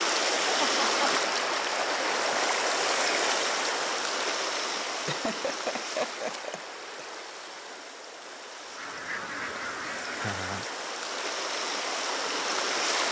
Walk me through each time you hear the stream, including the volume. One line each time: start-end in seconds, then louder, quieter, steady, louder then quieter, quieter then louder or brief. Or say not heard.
0.0-13.0 quieter then louder.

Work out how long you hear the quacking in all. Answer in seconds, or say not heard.
2 s.